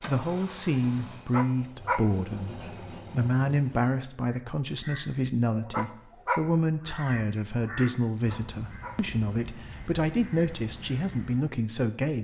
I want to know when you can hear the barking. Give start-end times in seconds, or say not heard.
1.3-2.0, 5.7-6.4, 8.2-8.9.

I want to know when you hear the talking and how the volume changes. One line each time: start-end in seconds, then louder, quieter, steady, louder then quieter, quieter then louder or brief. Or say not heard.
0.1-12.1 steady.